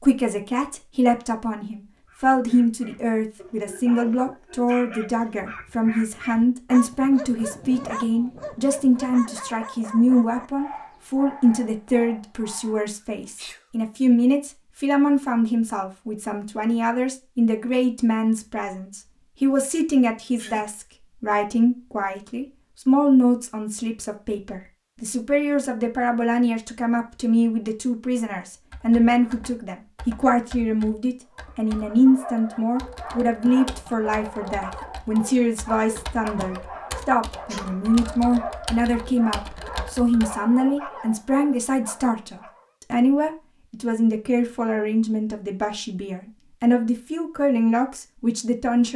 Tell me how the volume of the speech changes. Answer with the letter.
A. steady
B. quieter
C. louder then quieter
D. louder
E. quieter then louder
A.